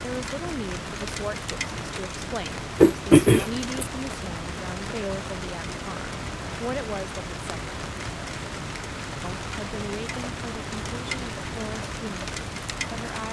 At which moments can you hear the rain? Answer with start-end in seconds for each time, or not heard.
0.0-13.2.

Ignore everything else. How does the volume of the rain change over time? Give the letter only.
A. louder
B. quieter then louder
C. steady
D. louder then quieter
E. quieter
C.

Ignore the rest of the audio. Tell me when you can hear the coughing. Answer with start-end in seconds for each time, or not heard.
2.8-3.9.